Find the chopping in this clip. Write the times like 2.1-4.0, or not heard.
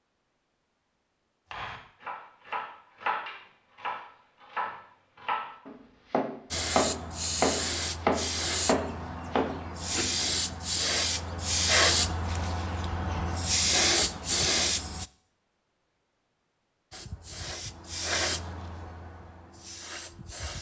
1.5-10.2.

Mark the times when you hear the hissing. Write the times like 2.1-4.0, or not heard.
6.5-15.1, 16.9-20.5.